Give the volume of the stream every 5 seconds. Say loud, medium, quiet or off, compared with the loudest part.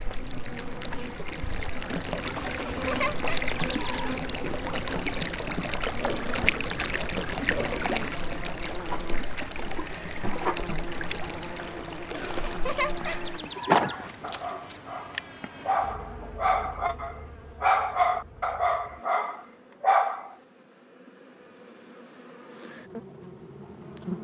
loud, loud, medium, off, off.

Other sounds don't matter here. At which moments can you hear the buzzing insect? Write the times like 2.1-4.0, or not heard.
0.0-24.1.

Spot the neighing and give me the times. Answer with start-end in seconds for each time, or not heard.
2.4-4.2, 12.1-14.8.